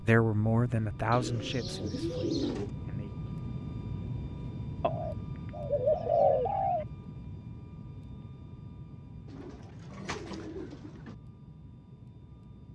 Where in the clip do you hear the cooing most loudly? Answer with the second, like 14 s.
6 s.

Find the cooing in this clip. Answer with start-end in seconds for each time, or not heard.
1.1-2.7, 4.8-6.8, 9.2-11.2.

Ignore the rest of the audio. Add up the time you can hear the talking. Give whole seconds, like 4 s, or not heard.
3 s.